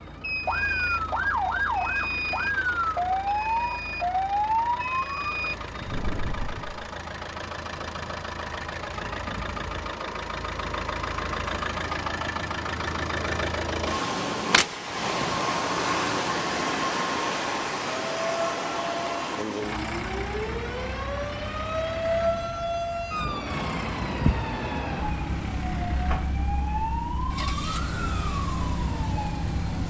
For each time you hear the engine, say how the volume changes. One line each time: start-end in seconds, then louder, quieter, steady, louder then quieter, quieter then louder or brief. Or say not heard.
0.0-29.8 louder then quieter.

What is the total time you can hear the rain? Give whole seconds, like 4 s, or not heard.
not heard.